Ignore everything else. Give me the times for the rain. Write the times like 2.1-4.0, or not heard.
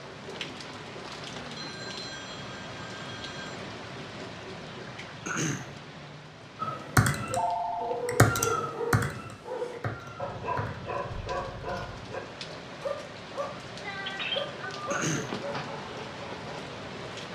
0.0-17.3.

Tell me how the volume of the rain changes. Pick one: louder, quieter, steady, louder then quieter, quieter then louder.
quieter then louder.